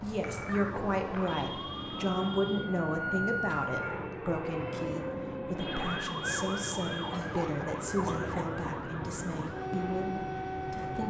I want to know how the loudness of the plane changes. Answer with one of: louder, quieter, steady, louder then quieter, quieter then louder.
steady.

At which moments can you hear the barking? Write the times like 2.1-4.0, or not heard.
not heard.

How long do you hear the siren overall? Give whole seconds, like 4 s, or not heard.
11 s.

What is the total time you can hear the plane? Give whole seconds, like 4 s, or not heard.
11 s.